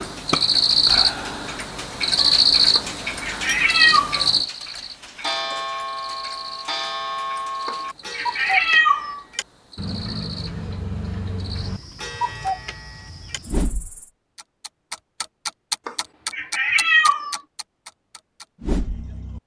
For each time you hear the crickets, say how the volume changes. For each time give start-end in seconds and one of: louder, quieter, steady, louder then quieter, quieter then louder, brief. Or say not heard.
0.0-14.1 quieter.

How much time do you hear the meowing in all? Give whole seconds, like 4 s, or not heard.
5 s.